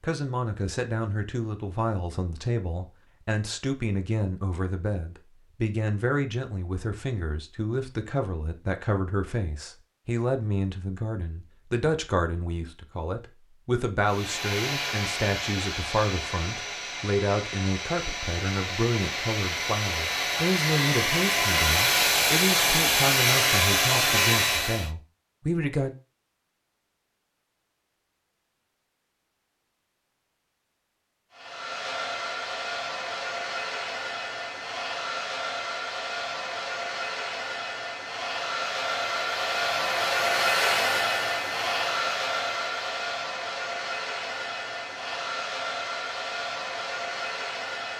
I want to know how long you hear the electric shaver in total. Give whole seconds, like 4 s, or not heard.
not heard.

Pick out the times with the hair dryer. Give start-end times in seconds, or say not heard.
14.0-24.9, 31.3-47.9.